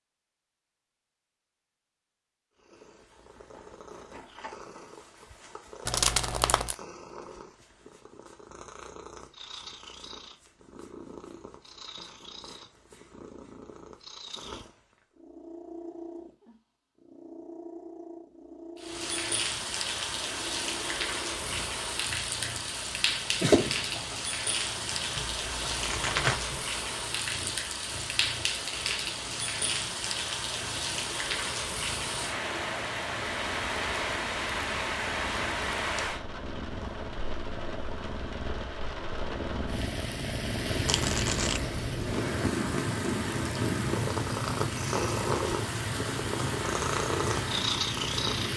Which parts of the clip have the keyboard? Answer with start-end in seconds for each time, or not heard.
not heard.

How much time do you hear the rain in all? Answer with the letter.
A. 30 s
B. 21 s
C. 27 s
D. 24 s
A.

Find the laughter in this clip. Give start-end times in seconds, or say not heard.
23.4-24.8.